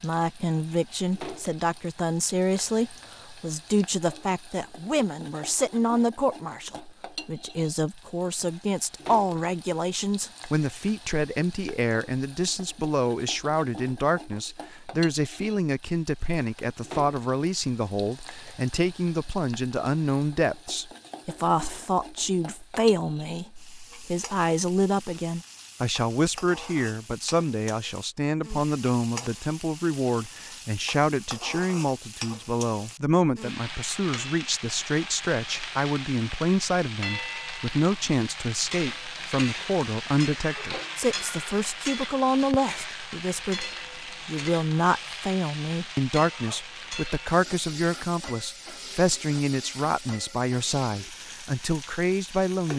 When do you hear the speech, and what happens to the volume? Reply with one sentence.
The speech can be heard from 0.0 to 52.7 s, at a steady volume.